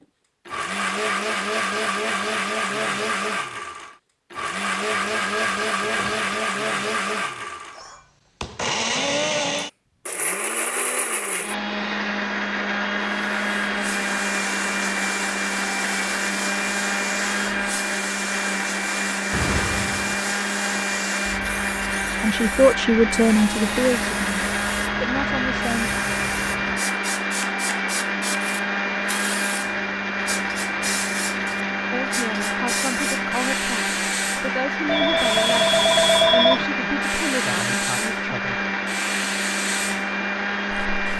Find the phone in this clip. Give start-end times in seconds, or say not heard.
5.2-6.5, 19.3-20.9, 34.9-36.6.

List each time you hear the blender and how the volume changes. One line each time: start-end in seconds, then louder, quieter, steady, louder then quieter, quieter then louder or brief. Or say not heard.
0.5-41.1 steady.